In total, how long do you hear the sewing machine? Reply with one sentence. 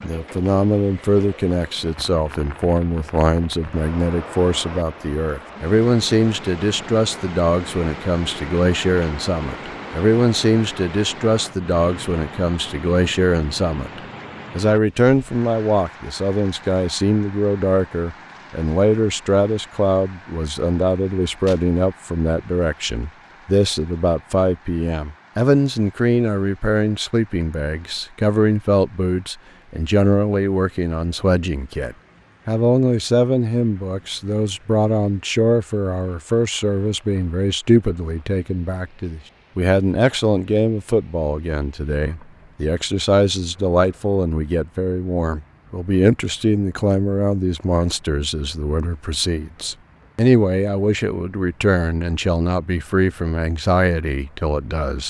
You can't hear the sewing machine here.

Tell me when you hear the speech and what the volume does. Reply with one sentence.
You can hear the speech from 0.0 to 55.0 s, at a steady volume.